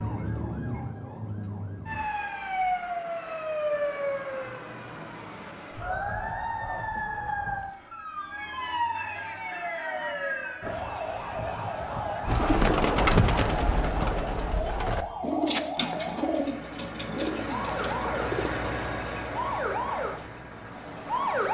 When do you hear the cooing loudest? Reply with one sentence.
The loudest moment of the cooing is at 13 seconds.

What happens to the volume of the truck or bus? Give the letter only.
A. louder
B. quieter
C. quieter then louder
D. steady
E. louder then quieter
E.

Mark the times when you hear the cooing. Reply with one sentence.
You can hear the cooing from 12.2 to 18.5 s.